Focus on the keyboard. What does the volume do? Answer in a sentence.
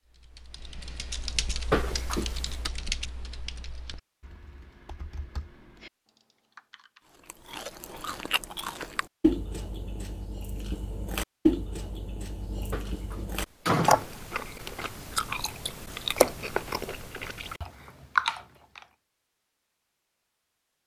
The loudness of the keyboard goes down.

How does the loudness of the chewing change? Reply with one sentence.
The volume of the chewing stays about the same.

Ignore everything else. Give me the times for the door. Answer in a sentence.
The door can be heard from 1.7 to 2.7 s and from 12.7 to 14.6 s.